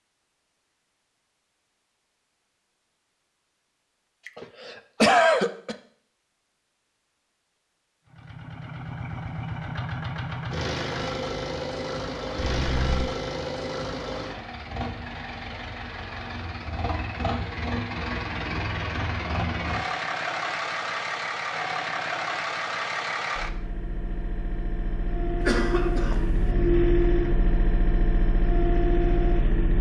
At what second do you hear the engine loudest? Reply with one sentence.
The volume of the engine peaks at 27 seconds.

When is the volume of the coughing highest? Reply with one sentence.
The loudest moment of the coughing is at 5 seconds.